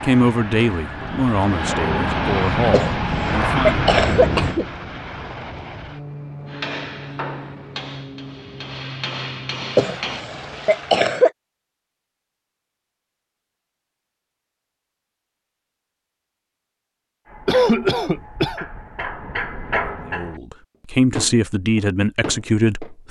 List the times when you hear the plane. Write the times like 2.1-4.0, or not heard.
0.0-11.1.